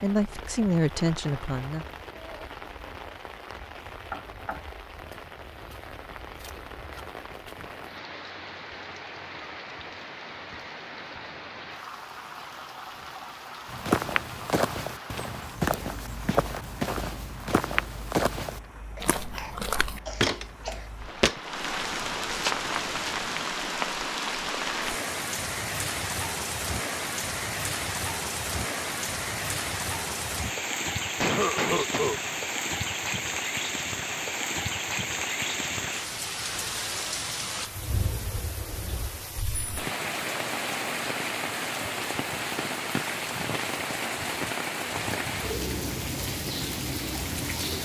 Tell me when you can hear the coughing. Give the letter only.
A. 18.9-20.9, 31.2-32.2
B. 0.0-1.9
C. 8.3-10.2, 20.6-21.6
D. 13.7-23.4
A.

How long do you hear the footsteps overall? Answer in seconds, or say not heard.
10 s.